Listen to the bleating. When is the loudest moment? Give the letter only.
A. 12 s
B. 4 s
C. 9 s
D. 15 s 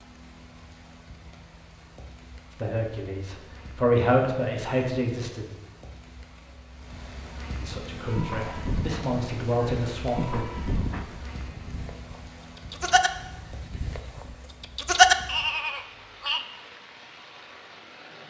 D.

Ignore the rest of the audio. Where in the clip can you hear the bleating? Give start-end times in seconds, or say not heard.
8.0-16.4.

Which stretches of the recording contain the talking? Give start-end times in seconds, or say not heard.
2.5-5.5, 7.6-10.4.